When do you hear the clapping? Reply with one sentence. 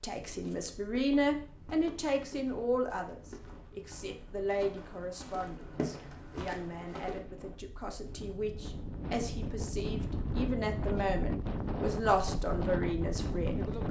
The clapping can't be heard in this clip.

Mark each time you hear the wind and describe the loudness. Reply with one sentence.
The wind can be heard from 0.1 to 13.8 s, getting louder.